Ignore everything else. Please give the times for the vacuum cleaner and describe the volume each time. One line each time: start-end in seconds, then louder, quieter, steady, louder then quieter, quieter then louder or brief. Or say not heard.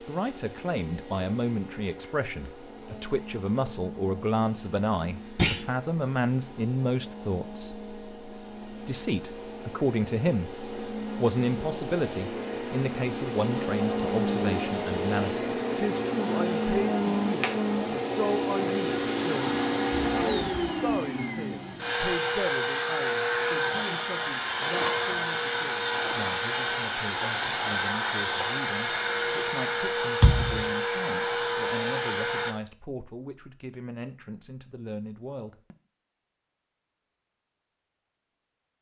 0.0-32.5 louder.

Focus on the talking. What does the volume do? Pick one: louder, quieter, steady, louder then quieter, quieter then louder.
quieter.